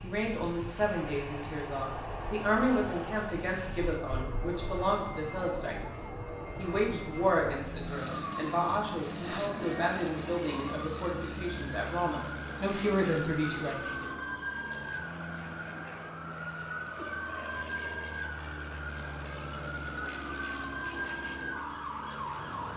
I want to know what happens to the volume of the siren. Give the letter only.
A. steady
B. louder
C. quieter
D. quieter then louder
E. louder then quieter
B.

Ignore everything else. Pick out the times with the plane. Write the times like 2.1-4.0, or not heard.
0.0-22.7.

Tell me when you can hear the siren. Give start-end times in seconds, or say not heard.
0.0-22.7.